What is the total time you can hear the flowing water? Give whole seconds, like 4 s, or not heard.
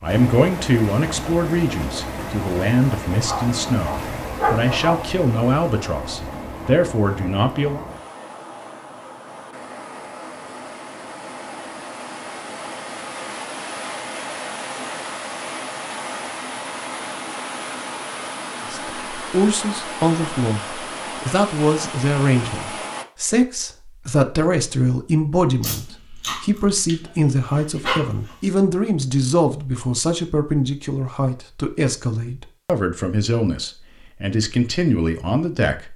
23 s.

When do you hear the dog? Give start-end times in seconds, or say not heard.
3.2-5.0, 25.6-28.4.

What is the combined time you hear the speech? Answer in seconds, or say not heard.
25 s.